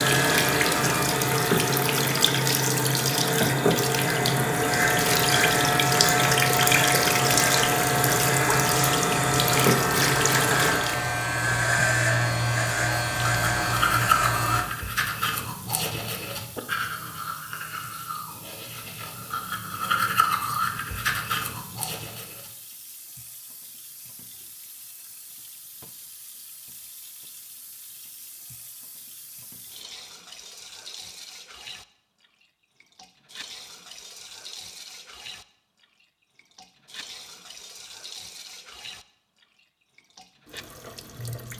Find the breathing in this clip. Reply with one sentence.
The breathing can't be heard in this clip.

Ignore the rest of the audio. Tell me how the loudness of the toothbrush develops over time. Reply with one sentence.
The loudness of the toothbrush goes down, then up.